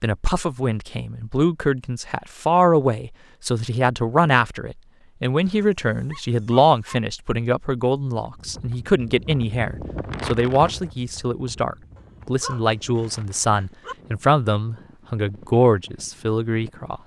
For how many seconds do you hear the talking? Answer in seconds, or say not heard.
17 s.